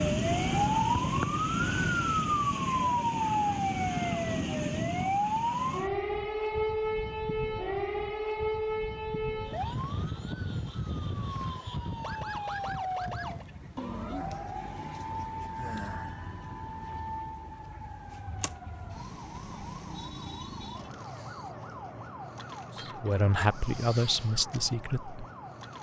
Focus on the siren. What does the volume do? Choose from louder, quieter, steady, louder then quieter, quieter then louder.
quieter.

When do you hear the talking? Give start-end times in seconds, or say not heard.
22.8-25.2.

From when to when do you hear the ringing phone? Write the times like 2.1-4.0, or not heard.
not heard.